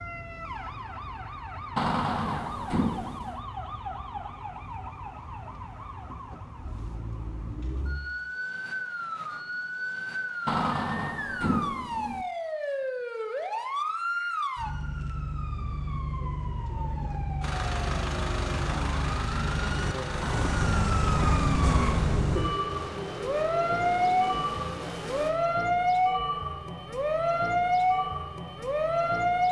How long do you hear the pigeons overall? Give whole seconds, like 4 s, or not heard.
not heard.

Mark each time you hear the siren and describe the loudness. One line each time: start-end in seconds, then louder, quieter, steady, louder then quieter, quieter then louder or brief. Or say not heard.
0.0-29.4 louder.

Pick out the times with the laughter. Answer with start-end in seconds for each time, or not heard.
not heard.